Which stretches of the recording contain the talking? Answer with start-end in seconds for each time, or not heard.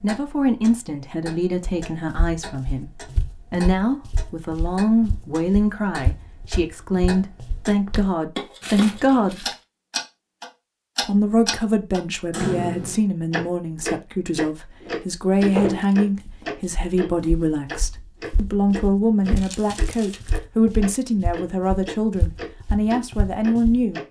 0.0-2.9, 3.5-9.4, 11.0-24.0.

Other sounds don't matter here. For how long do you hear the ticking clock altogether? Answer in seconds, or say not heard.
24 s.